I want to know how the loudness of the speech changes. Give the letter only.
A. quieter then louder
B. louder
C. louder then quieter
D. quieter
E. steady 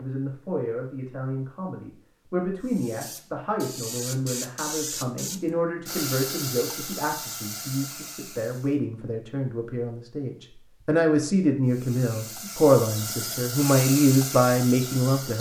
B.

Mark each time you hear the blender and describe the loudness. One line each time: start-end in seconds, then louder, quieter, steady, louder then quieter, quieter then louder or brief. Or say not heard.
not heard.